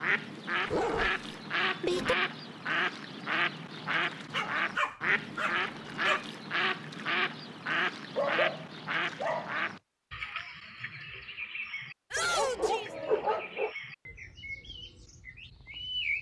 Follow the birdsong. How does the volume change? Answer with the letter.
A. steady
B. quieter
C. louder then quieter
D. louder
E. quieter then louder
B.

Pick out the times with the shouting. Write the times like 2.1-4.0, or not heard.
12.1-12.9.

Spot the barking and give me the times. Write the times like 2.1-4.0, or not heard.
0.7-2.1, 4.3-6.2, 8.2-9.7, 12.2-13.7.